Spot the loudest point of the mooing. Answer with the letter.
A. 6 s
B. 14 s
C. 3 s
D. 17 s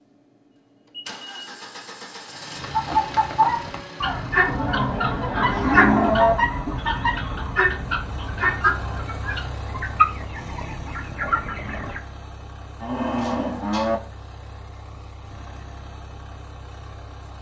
A.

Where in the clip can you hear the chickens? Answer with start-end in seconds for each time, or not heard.
2.6-12.0.